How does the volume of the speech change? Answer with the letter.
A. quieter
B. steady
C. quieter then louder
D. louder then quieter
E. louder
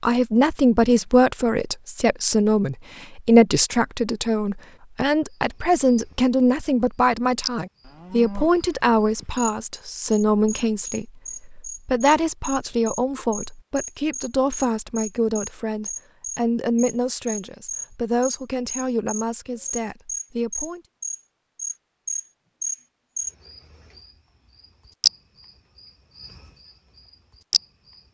A.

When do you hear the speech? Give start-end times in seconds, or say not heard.
0.0-20.8.